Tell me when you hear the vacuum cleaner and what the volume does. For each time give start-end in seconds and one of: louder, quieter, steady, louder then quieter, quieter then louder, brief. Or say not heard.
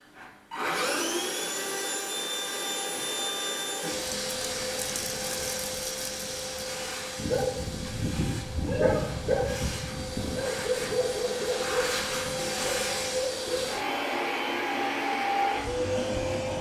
0.0-16.5 quieter then louder.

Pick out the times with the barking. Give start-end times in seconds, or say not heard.
7.2-13.7.